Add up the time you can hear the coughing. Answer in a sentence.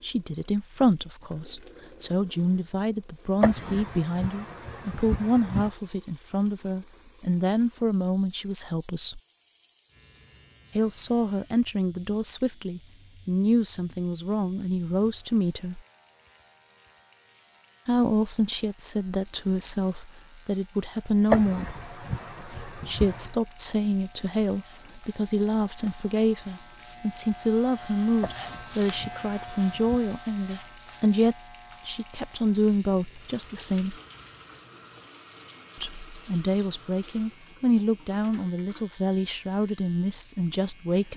The coughing can be heard for 6 seconds in total.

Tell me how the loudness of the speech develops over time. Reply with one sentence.
The volume of the speech stays about the same.